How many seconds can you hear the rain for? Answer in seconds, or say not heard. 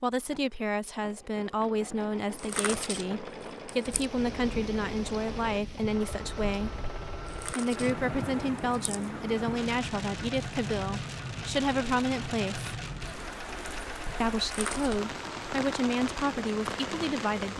14 s.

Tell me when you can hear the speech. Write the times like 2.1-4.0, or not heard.
0.0-6.8, 7.5-12.7, 14.2-17.5.